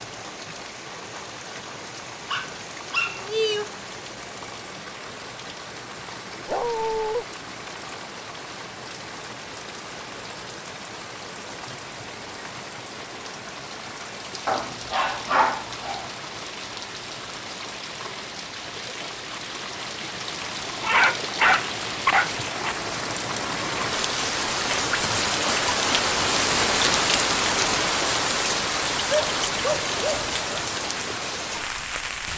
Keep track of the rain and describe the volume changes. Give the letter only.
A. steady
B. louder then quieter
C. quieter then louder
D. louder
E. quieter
D.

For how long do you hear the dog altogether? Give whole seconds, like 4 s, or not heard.
7 s.